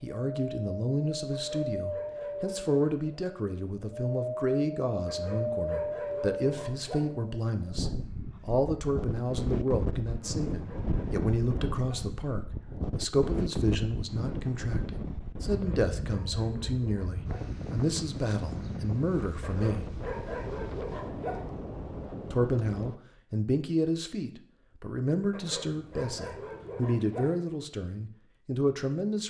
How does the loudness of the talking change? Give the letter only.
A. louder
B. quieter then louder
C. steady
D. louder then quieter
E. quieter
C.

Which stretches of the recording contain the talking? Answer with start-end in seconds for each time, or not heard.
0.0-19.9, 22.2-29.2.